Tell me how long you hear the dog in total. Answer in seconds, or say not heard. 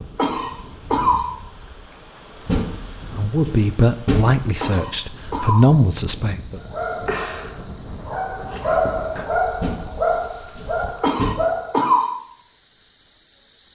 5 s.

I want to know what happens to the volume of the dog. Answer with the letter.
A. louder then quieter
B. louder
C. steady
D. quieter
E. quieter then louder
A.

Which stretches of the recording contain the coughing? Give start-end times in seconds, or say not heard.
0.1-1.2, 4.6-5.7, 11.0-12.1.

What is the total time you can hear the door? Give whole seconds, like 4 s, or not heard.
4 s.